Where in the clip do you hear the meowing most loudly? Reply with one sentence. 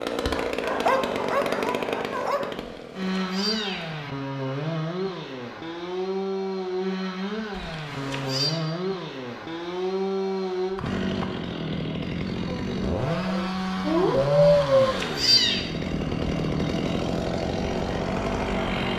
The loudest moment of the meowing is at 15 seconds.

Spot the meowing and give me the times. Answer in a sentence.
The meowing can be heard from 2.5 to 4.0 s, from 7.5 to 8.6 s and from 14.4 to 15.6 s.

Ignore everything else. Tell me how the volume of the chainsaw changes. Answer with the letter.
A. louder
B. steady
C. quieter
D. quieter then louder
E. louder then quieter
B.